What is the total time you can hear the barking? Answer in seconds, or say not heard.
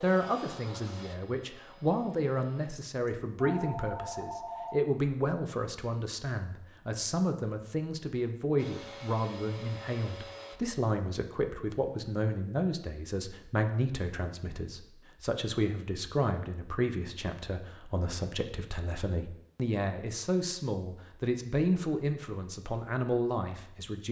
not heard.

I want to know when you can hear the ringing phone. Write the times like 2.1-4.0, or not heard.
2.8-4.8.